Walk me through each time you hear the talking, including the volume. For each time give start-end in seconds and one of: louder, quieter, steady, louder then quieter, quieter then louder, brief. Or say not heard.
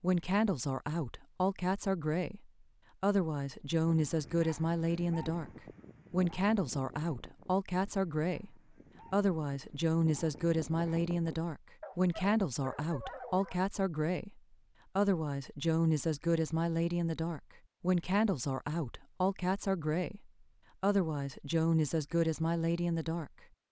0.0-23.4 steady.